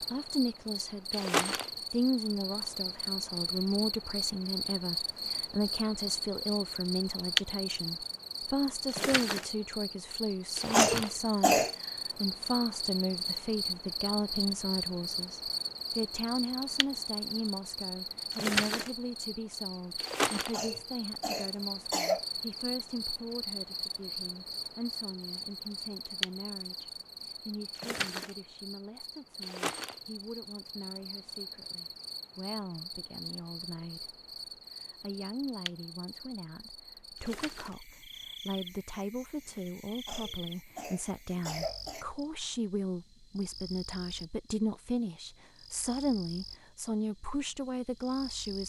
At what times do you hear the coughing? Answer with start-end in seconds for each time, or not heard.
10.7-11.8, 20.5-22.2, 40.0-42.0.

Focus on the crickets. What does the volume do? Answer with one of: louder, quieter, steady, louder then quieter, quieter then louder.
quieter.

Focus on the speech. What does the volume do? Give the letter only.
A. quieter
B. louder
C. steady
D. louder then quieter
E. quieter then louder
E.